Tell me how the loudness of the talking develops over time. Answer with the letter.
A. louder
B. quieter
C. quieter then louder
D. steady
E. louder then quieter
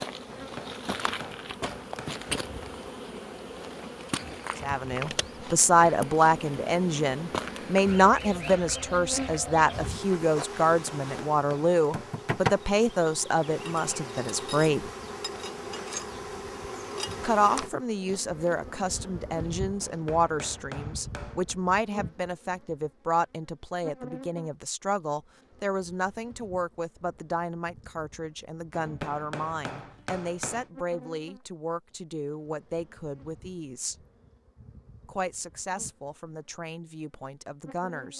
B.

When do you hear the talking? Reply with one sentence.
The talking can be heard from 4.6 to 14.9 s, from 17.2 to 34.0 s and from 35.0 to 38.1 s.